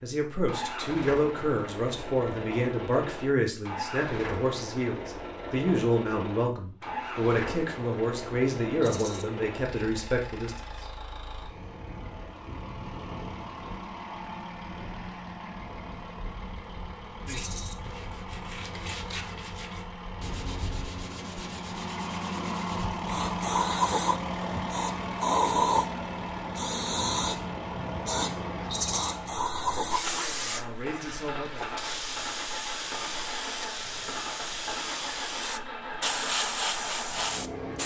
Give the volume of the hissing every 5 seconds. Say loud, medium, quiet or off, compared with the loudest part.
off, off, off, off, loud, loud, medium, loud.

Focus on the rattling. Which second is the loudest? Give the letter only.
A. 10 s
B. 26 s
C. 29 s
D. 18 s
C.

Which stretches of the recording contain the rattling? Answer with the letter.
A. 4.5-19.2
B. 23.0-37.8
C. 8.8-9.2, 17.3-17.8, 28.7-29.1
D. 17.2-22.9
C.